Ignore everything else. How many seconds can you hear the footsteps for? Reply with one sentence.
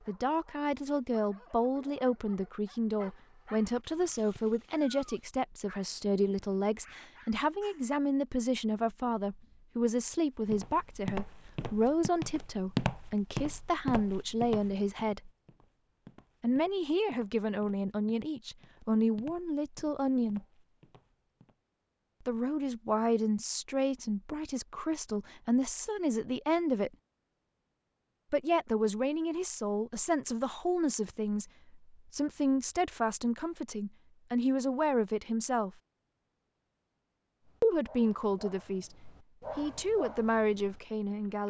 You can hear the footsteps for 11 seconds altogether.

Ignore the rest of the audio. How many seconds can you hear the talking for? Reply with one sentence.
The talking can be heard for 35 seconds in total.